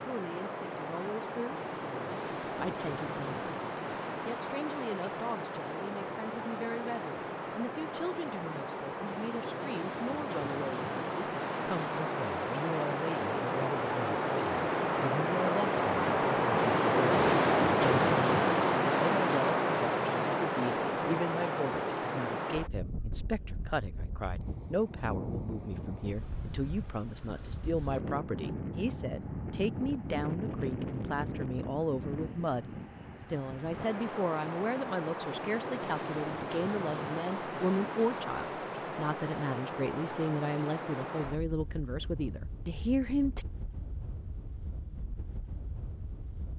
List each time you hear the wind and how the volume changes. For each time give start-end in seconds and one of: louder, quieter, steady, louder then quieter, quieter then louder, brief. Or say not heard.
0.0-46.5 louder then quieter.